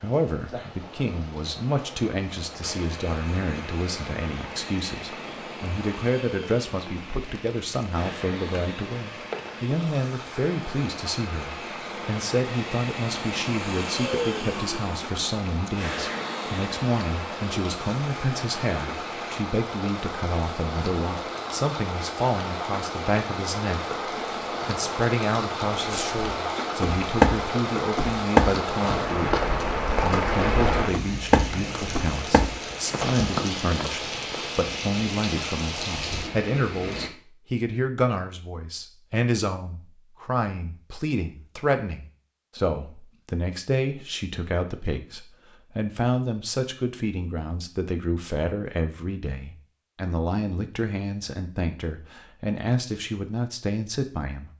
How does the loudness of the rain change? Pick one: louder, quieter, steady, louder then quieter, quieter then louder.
louder.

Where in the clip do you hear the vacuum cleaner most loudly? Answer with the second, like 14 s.
14 s.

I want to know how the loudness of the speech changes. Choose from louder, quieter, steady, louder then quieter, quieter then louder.
steady.